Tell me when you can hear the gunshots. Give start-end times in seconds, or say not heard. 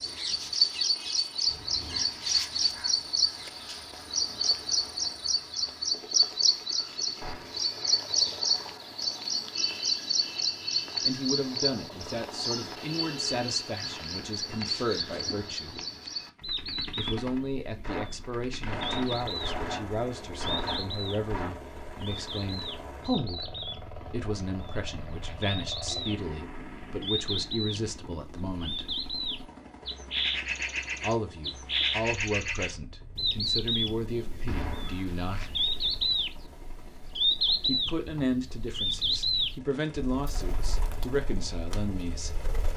7.2-7.7, 17.8-21.6, 34.5-35.4.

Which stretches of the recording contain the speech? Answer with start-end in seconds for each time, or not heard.
11.1-15.8, 16.9-28.9, 31.0-35.5, 37.6-42.4.